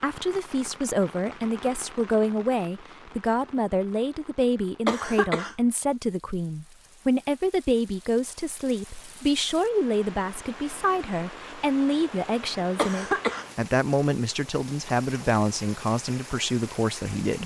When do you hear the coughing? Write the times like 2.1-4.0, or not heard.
4.8-5.5, 12.8-13.4.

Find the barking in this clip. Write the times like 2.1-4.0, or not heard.
not heard.